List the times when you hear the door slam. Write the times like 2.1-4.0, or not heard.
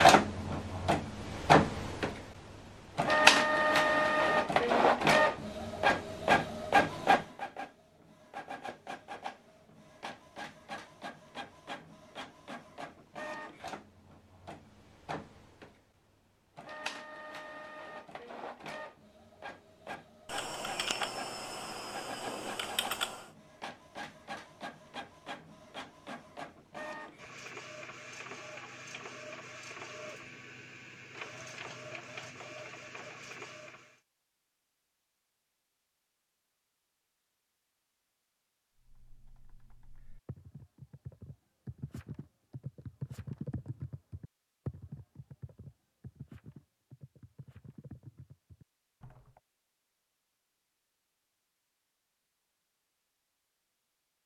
not heard.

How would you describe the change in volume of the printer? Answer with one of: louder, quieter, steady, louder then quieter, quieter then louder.
quieter.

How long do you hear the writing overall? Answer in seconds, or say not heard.
not heard.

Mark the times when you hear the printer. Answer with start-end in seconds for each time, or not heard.
0.0-34.0.